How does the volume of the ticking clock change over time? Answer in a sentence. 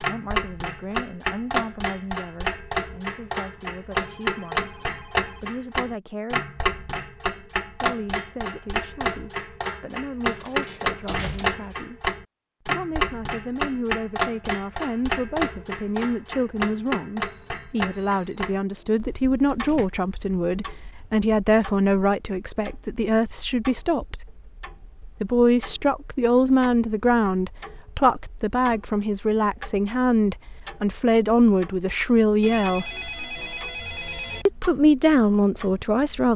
The volume of the ticking clock goes down.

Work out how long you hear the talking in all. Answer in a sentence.
The talking can be heard for 32 seconds in total.